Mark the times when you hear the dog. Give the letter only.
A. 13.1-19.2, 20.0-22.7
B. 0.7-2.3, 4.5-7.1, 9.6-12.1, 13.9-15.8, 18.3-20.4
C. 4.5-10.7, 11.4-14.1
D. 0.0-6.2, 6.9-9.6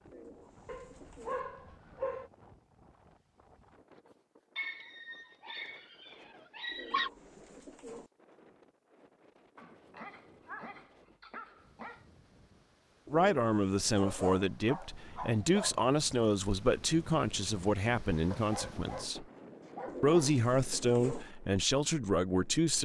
B.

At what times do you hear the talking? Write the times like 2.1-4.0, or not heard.
13.1-19.2, 20.0-22.7.